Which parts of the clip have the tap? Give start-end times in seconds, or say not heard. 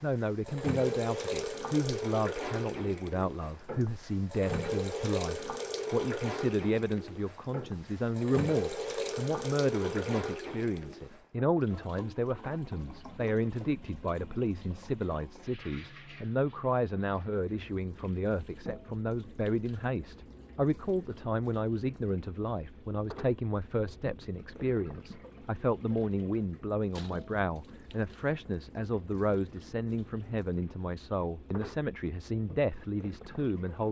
0.0-33.8.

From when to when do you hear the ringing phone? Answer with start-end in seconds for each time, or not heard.
not heard.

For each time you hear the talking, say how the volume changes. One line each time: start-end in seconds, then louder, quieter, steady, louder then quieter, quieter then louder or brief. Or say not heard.
0.0-33.8 steady.